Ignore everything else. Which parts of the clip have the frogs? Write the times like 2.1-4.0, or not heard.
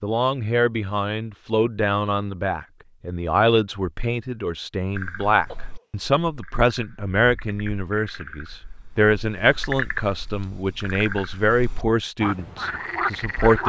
5.0-13.6.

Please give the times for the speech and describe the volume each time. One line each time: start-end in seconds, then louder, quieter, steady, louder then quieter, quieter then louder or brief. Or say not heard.
0.0-13.6 steady.